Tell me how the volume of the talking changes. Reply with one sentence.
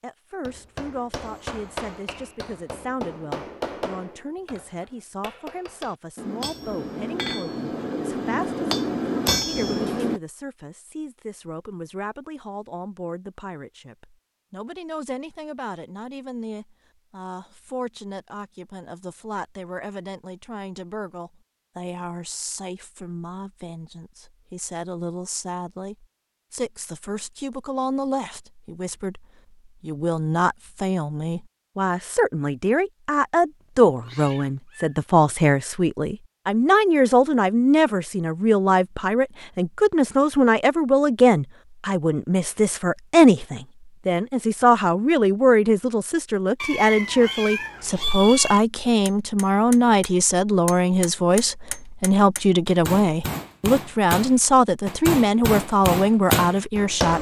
The volume of the talking goes up.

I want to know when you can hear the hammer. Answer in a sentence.
The hammer can be heard from 0.5 to 10.2 s and from 49.0 to 57.1 s.